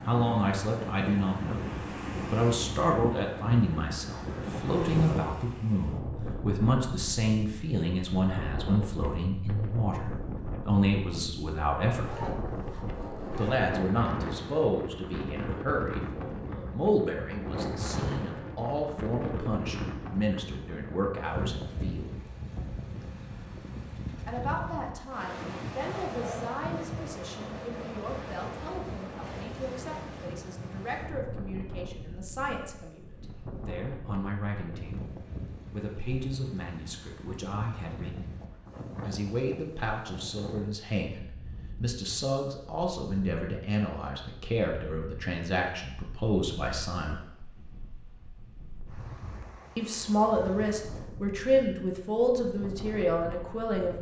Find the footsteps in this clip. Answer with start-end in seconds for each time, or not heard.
not heard.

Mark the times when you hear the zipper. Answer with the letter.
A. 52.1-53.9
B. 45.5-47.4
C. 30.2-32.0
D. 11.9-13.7
D.